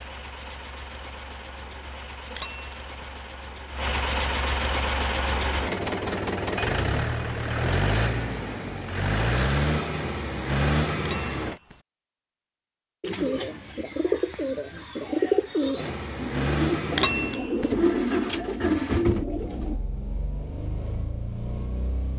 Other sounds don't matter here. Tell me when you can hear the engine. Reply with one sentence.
You can hear the engine from 0.0 to 11.6 s and from 15.8 to 22.1 s.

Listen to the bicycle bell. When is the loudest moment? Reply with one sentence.
The loudest moment of the bicycle bell is at 17 seconds.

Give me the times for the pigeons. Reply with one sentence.
The pigeons can be heard from 13.0 to 19.8 s.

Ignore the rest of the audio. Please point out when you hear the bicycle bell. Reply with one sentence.
The bicycle bell can be heard from 2.3 to 3.1 s, from 10.9 to 11.8 s and from 16.9 to 17.8 s.